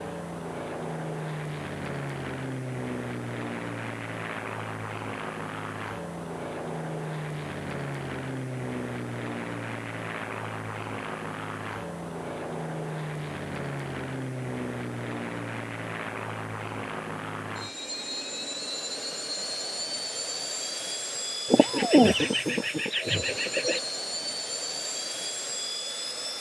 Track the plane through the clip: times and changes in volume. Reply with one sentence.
The plane can be heard from 0.0 to 26.3 s, at a steady volume.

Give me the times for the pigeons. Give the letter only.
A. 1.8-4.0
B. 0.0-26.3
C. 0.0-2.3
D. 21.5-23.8
D.